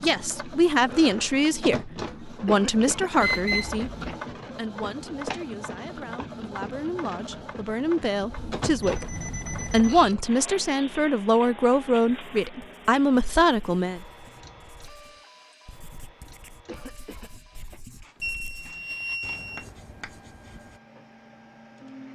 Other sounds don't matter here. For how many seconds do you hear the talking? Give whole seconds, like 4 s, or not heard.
14 s.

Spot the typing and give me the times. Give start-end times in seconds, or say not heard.
not heard.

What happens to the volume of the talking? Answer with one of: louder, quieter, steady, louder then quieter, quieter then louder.
quieter then louder.